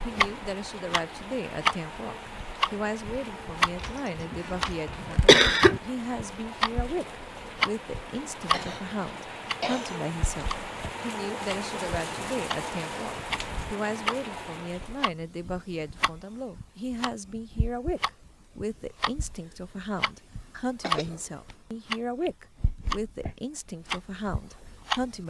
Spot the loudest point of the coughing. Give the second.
5 s.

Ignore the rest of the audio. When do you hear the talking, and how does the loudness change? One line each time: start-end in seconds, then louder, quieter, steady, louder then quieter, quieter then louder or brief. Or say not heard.
0.0-25.2 steady.